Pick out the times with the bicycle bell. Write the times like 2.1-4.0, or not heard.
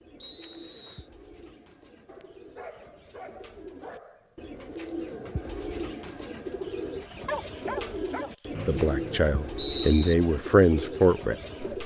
not heard.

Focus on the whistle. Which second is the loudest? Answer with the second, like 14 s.
10 s.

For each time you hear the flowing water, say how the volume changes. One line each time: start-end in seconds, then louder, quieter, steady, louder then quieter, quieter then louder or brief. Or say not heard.
not heard.